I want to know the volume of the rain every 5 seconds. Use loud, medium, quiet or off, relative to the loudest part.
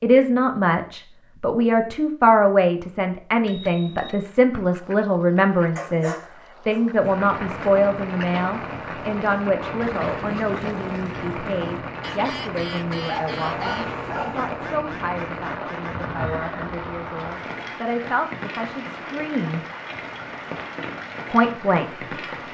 off, loud, loud, loud, loud.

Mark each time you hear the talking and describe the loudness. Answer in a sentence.
The talking can be heard from 0.0 to 19.6 s, getting quieter; and briefly from 21.3 to 22.1 s.